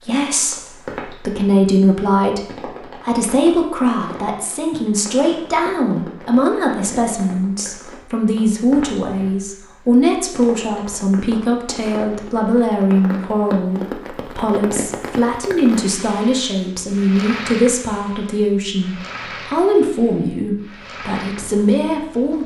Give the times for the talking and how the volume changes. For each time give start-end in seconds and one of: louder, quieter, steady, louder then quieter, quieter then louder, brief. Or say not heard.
0.0-22.4 steady.